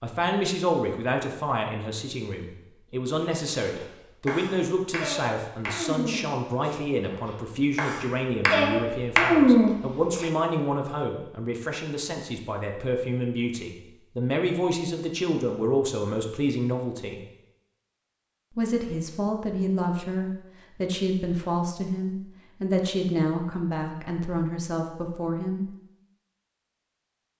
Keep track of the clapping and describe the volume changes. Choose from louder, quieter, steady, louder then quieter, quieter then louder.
quieter then louder.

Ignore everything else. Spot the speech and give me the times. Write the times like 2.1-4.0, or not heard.
0.0-17.2, 18.6-25.7.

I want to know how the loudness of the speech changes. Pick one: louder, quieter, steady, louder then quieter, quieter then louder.
steady.